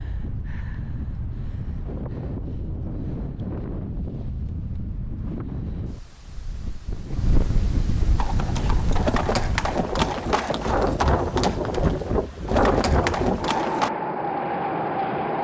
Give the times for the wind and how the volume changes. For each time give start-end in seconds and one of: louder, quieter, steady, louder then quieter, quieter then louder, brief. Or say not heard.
0.0-15.3 louder.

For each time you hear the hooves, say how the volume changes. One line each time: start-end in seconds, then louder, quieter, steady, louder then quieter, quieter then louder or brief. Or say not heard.
8.2-13.9 quieter then louder.